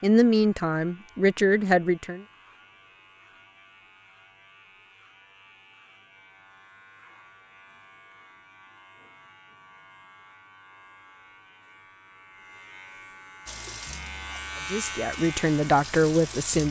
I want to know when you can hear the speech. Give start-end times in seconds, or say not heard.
0.0-2.2, 14.7-16.6.